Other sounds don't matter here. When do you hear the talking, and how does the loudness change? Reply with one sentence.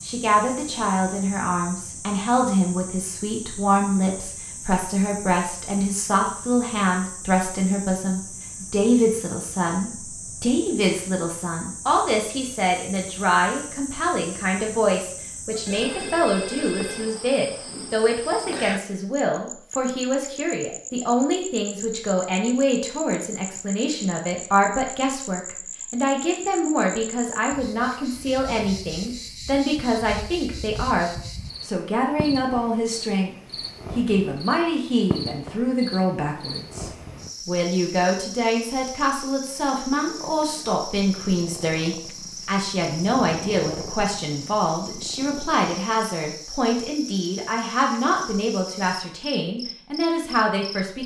You can hear the talking from 0.0 to 33.4 s, at a steady volume; and from 34.0 to 51.0 s, at a steady volume.